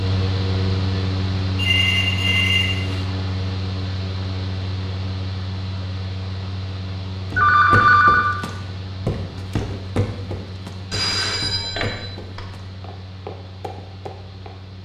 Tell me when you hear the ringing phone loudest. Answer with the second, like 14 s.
8 s.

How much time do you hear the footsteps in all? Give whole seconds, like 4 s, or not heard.
7 s.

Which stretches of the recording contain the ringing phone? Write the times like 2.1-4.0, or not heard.
1.6-3.0, 7.3-8.3, 10.9-12.4.